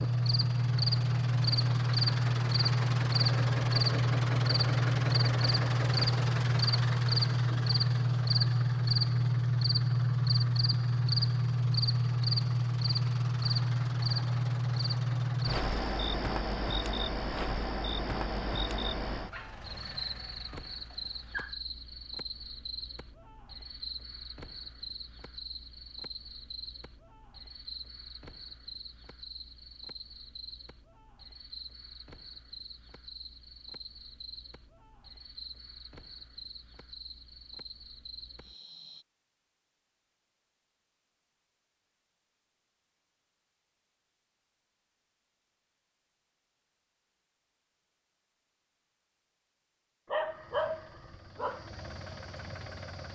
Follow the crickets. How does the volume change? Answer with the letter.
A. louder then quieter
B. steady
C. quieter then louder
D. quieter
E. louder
D.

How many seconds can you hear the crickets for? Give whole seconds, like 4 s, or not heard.
39 s.